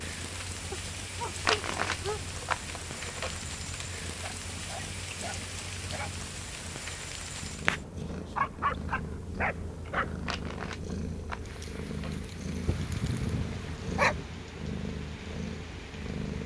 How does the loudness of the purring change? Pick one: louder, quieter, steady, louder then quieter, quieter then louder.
louder.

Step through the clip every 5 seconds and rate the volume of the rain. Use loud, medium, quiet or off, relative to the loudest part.
loud, loud, medium, medium.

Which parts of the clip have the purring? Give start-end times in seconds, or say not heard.
0.0-16.4.